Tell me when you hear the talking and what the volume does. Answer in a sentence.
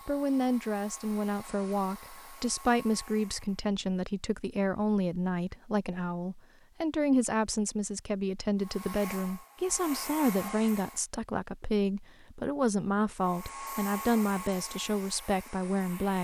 The talking can be heard from 0.1 to 16.1 s, at a steady volume.